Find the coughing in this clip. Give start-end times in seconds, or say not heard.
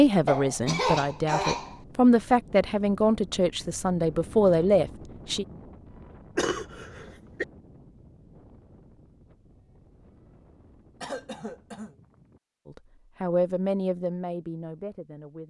0.2-1.8, 6.3-7.5, 11.0-11.9.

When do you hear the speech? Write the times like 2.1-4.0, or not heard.
0.0-5.5, 12.7-15.4.